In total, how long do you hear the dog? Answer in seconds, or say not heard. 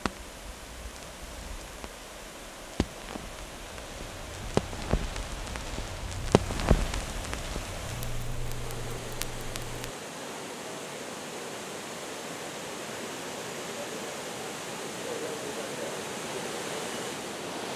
not heard.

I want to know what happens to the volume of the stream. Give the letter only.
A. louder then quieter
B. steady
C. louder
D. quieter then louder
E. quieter
C.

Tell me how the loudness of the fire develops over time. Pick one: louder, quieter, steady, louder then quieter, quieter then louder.
louder then quieter.